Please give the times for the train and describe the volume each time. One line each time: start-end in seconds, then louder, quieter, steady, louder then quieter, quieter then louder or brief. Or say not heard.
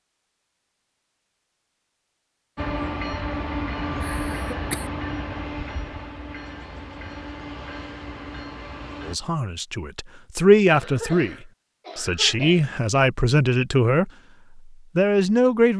2.5-9.2 quieter.